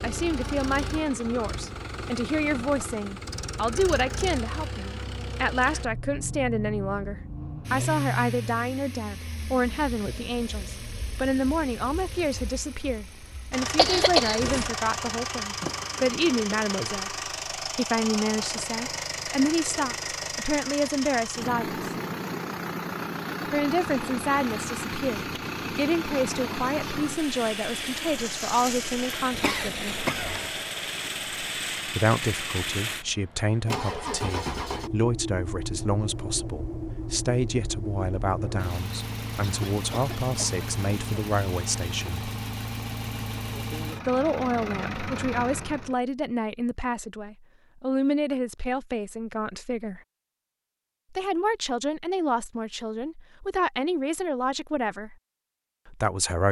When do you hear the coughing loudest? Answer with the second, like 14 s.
14 s.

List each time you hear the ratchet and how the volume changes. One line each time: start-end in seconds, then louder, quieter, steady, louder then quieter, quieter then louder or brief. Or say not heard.
not heard.